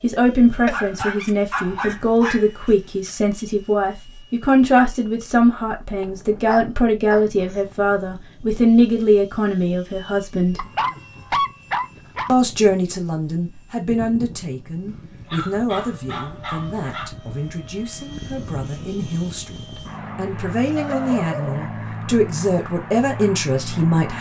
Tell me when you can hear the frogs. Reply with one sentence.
The frogs can't be heard in this clip.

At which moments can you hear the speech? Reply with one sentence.
The speech can be heard from 0.0 to 10.7 s and from 12.2 to 24.1 s.